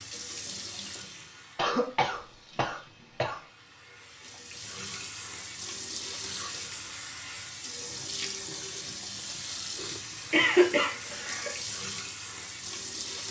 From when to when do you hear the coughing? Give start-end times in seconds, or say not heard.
1.6-3.4, 10.3-11.6.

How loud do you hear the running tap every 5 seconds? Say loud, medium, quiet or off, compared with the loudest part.
medium, loud, loud.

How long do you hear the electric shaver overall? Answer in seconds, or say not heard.
not heard.